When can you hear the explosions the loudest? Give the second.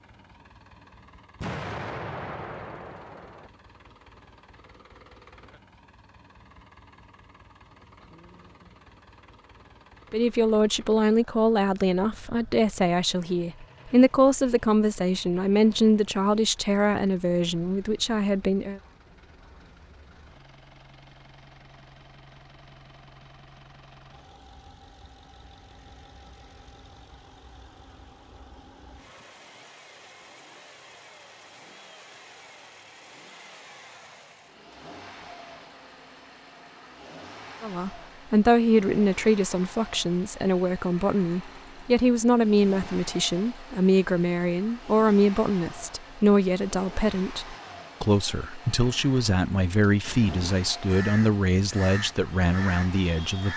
2 s.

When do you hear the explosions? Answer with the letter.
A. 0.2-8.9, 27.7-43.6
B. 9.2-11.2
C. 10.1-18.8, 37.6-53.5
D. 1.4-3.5
D.